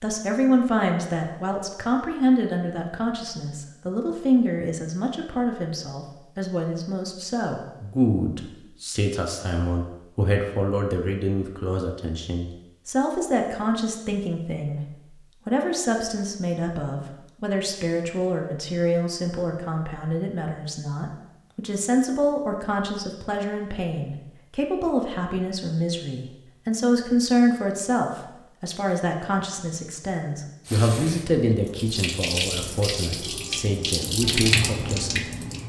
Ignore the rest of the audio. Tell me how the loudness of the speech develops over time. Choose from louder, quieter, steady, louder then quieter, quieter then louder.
steady.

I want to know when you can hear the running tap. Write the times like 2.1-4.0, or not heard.
30.6-35.6.